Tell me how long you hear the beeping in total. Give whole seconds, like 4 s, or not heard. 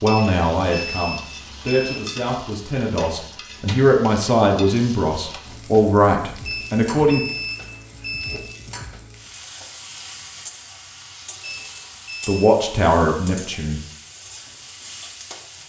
5 s.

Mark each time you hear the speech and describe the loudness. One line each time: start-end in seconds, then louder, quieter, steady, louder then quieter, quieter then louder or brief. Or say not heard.
0.0-7.2 louder
12.2-13.8 brief.